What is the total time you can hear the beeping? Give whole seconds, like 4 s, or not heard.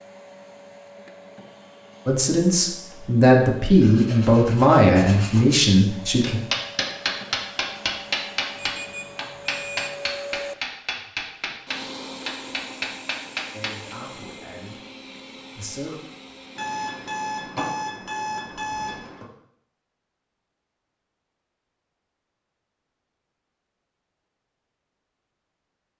4 s.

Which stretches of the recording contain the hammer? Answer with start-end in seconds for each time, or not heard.
6.2-13.9.